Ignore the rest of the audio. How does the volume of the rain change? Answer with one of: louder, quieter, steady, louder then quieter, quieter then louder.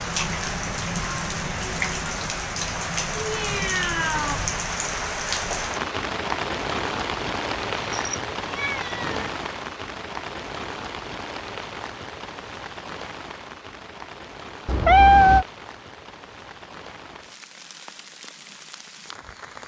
quieter.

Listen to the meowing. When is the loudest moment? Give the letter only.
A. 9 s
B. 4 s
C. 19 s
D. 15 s
D.